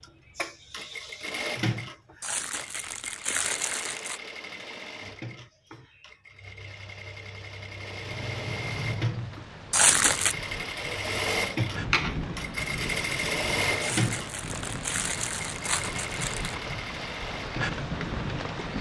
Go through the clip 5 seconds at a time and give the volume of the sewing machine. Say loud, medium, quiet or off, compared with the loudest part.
medium, medium, loud, medium.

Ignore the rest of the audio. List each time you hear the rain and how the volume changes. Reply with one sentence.
The rain can be heard from 8.2 to 18.7 s, getting louder.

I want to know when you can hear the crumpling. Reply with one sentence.
The crumpling can be heard from 2.2 to 4.2 s, from 9.7 to 10.3 s and from 13.8 to 16.6 s.